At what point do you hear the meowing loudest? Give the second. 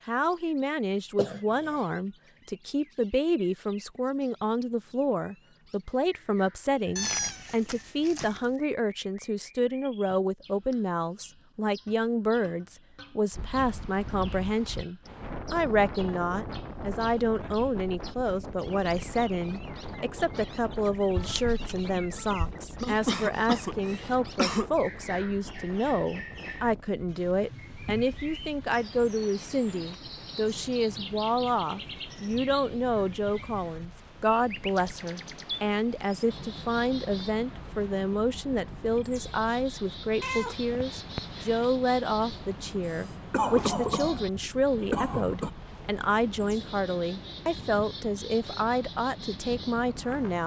7 s.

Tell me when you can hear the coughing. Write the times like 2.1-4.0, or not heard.
1.1-1.8, 22.8-24.7, 42.9-45.5.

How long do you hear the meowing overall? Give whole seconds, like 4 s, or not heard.
4 s.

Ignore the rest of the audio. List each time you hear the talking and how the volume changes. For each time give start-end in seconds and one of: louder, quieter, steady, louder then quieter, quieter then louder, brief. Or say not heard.
0.1-50.4 steady.